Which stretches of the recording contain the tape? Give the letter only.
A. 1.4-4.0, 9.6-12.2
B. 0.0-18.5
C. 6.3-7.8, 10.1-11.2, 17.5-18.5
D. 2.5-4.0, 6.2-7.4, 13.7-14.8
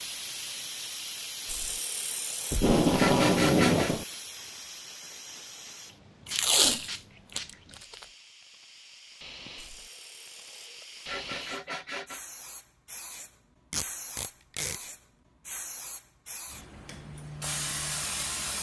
D.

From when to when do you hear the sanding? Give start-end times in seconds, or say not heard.
1.4-4.0, 9.6-12.2.